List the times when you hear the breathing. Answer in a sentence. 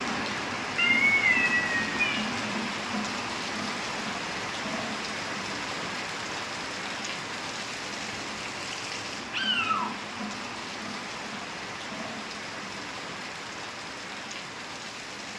You can't hear the breathing here.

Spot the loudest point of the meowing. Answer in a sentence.
The loudest moment of the meowing is at 1 second.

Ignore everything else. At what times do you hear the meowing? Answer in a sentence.
The meowing can be heard from 0.8 to 2.3 s and from 9.3 to 9.9 s.